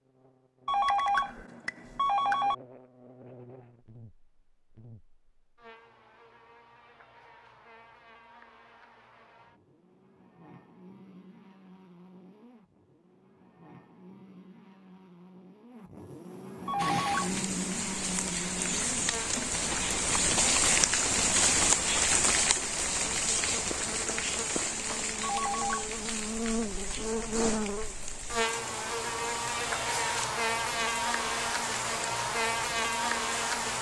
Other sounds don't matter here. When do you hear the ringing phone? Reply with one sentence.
You can hear the ringing phone from 0.7 to 2.5 s, from 16.6 to 17.4 s and from 25.2 to 25.9 s.